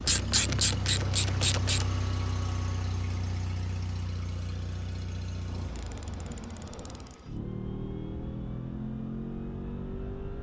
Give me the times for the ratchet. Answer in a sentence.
The ratchet can be heard from 0.0 to 1.9 s and from 5.5 to 7.2 s.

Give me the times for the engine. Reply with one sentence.
You can hear the engine from 0.0 to 10.3 s.